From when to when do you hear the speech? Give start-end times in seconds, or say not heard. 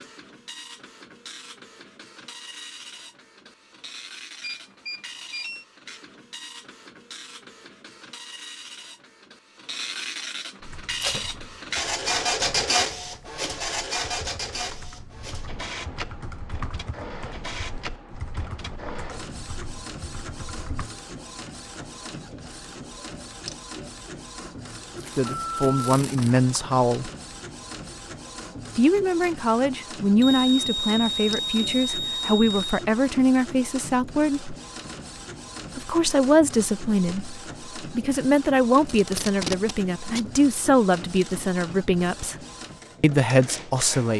25.1-27.1, 28.8-34.5, 35.8-42.4, 43.0-44.1.